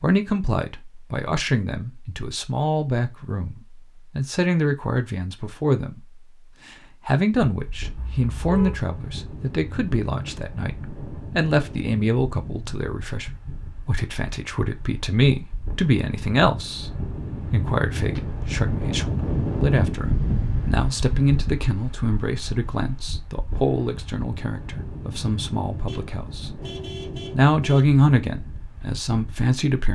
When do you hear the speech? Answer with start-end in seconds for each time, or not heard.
0.0-6.2, 7.0-26.6, 27.3-29.9.